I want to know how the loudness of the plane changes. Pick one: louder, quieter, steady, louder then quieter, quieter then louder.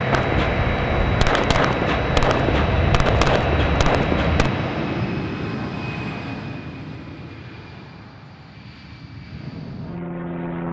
quieter.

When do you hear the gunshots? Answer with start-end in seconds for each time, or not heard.
0.1-4.5.